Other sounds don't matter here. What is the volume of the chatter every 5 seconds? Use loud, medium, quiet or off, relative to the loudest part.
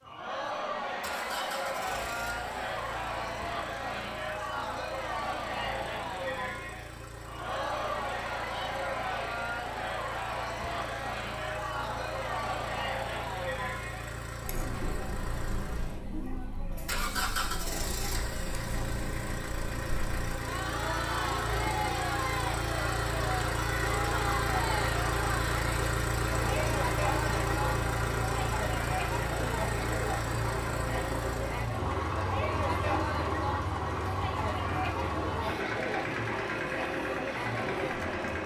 loud, loud, loud, medium, loud, loud, loud, loud.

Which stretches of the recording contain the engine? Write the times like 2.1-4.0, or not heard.
0.0-38.4.